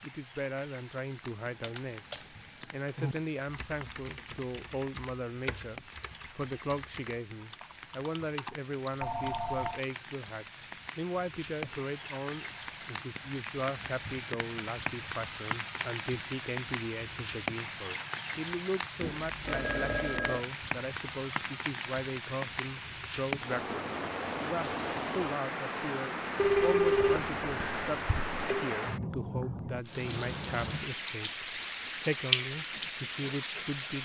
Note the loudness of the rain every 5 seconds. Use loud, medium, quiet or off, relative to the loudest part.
quiet, quiet, medium, loud, loud, loud, loud.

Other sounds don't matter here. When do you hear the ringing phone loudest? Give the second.
27 s.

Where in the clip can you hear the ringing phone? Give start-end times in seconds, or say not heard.
9.0-9.8, 19.0-20.4, 26.4-28.6.